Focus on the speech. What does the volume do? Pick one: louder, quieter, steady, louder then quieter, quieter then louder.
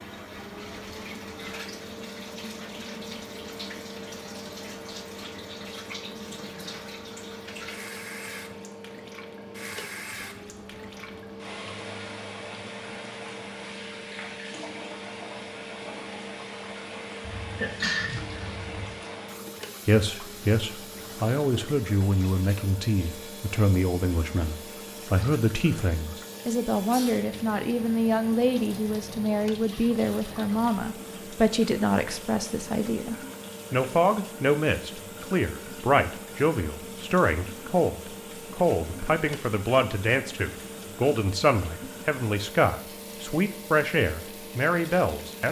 steady.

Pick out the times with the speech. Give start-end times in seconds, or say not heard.
19.9-45.4.